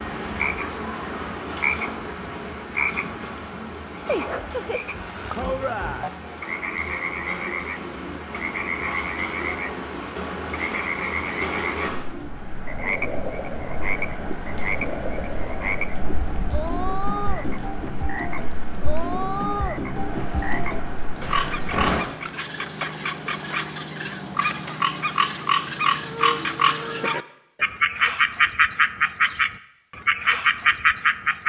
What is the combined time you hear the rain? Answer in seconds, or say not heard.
22 s.